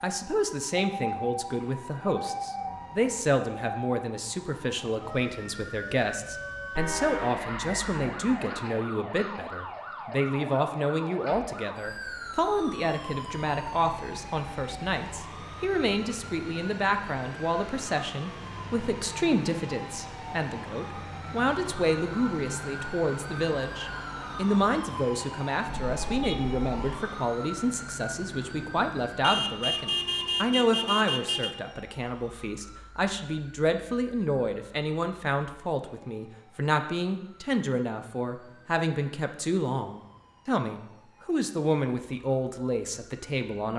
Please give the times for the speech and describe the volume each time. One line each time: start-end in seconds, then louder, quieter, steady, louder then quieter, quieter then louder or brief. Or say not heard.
0.0-43.7 steady.